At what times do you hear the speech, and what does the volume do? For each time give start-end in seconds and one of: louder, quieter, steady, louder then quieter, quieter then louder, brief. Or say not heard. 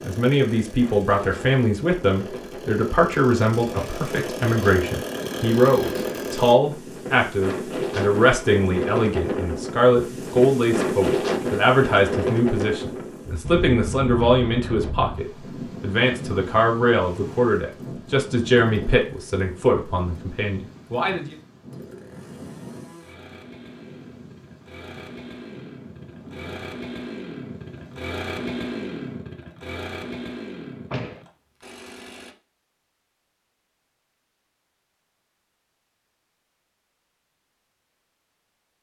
0.0-21.4 steady.